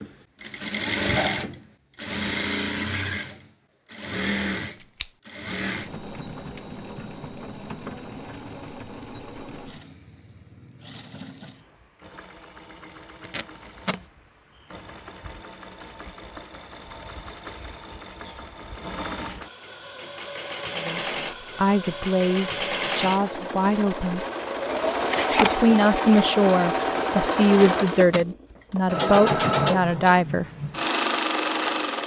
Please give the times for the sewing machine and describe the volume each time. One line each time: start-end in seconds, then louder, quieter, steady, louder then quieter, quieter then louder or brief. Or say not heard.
0.0-32.0 quieter then louder.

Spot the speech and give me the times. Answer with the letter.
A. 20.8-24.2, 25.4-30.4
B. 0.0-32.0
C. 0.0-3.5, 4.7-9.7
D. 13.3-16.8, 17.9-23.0
A.